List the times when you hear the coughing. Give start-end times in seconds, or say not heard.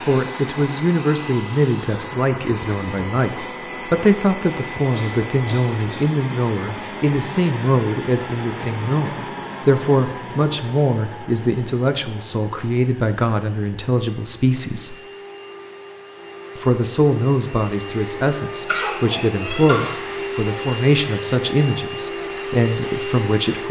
4.9-6.1, 18.6-19.9.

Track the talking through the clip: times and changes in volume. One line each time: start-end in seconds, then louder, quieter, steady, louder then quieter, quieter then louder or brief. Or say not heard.
0.1-14.9 steady
16.6-23.6 steady.